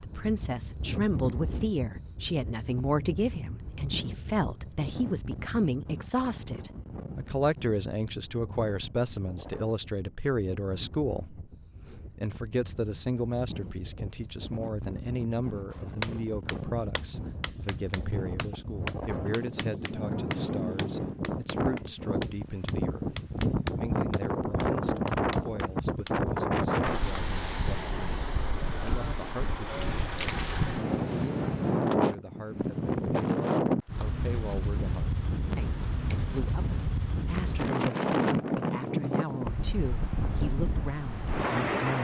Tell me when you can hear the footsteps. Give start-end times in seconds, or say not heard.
not heard.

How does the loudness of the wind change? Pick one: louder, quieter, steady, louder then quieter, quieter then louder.
louder.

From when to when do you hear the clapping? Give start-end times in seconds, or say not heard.
15.7-26.1.